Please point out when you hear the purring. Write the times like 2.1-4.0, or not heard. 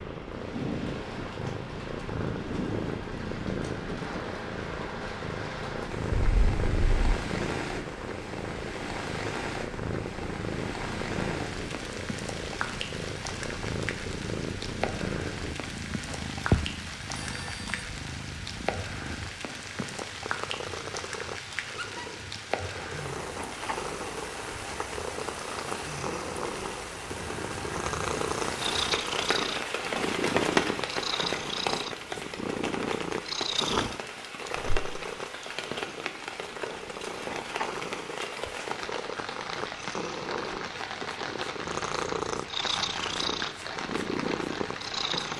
0.0-45.3.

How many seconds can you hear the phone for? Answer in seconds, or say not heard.
2 s.